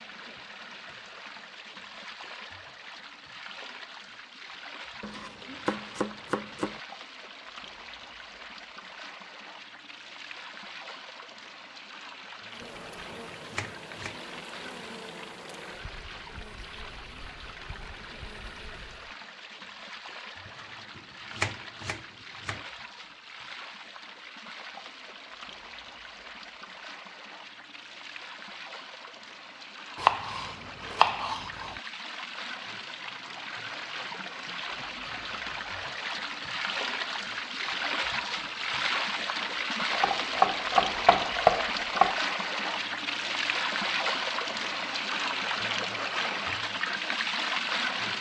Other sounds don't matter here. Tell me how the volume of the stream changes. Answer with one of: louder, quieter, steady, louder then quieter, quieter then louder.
louder.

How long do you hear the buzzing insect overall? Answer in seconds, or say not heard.
7 s.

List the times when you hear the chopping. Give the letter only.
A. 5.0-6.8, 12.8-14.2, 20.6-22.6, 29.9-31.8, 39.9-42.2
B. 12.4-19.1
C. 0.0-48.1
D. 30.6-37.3
A.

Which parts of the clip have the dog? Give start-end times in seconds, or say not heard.
not heard.